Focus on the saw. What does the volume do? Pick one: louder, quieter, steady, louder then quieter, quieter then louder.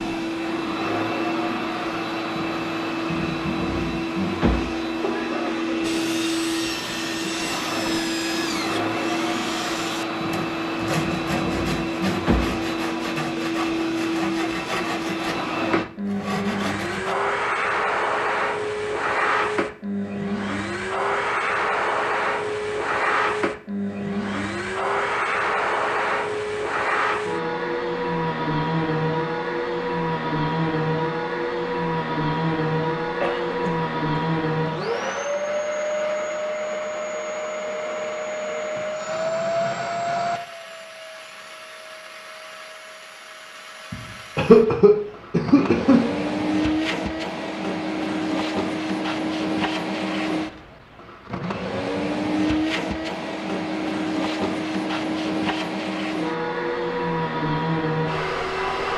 steady.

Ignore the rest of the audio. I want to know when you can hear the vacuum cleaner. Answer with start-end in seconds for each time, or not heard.
0.0-58.9.